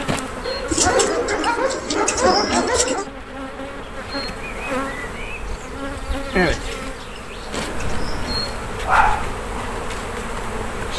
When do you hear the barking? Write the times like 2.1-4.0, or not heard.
0.5-3.0, 7.7-9.4.